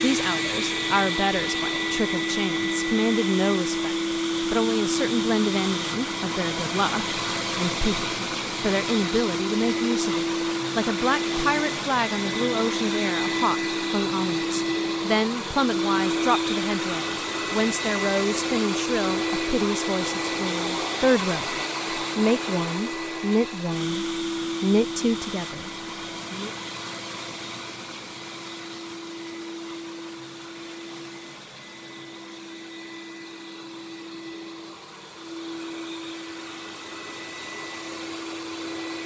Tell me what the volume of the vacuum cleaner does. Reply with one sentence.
The volume of the vacuum cleaner goes down.